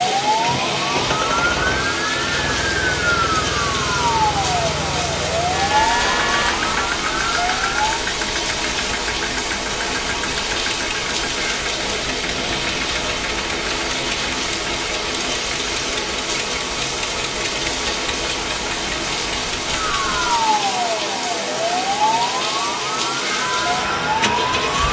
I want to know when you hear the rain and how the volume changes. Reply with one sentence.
You can hear the rain from 0.0 to 24.8 s, at a steady volume.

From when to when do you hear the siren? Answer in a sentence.
You can hear the siren from 0.0 to 7.8 s and from 19.7 to 24.6 s.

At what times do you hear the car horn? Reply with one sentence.
You can hear the car horn from 5.5 to 6.8 s.